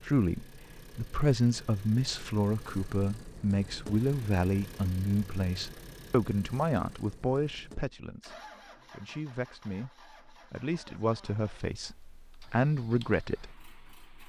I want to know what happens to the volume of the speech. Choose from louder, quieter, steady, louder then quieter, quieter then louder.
quieter then louder.